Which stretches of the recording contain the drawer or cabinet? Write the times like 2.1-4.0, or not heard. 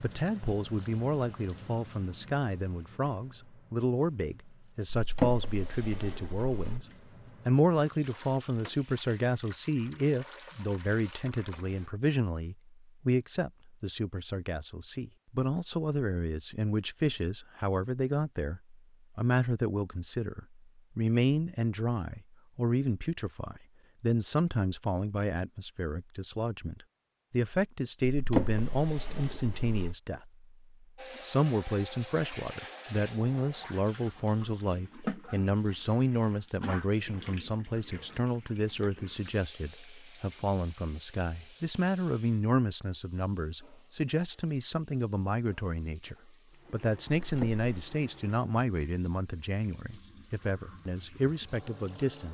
4.9-6.8, 28.0-29.9, 47.2-47.6.